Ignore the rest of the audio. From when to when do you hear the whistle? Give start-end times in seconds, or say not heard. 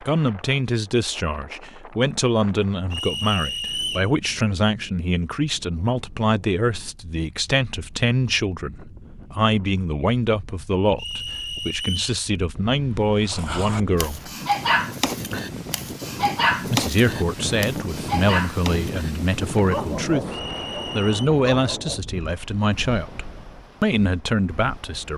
2.9-4.1, 10.9-12.2, 20.3-21.3.